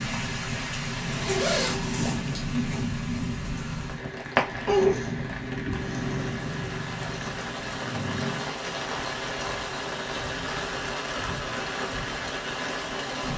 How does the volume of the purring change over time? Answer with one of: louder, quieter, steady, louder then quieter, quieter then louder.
louder then quieter.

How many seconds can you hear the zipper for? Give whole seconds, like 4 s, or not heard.
2 s.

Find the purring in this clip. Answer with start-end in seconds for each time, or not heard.
0.0-8.6.